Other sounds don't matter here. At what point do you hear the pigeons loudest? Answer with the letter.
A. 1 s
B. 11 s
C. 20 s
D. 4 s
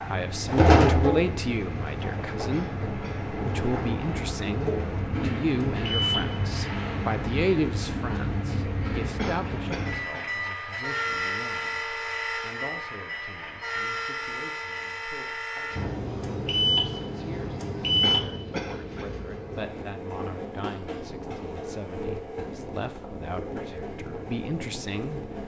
A.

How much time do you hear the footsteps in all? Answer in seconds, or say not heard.
not heard.